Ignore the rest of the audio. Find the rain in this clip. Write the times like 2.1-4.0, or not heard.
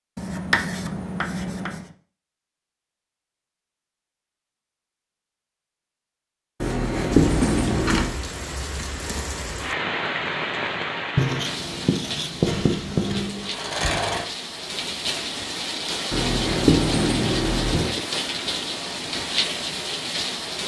7.1-20.6.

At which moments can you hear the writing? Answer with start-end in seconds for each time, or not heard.
0.1-1.9, 6.6-8.2, 11.2-13.2, 16.1-18.0.